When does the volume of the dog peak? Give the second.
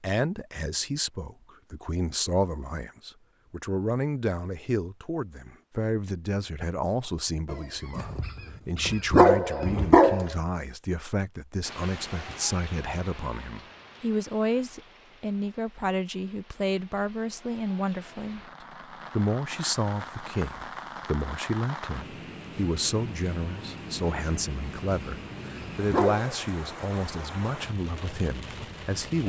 9 s.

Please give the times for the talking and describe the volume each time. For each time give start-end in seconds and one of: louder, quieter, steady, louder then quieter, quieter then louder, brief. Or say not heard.
0.0-29.2 steady.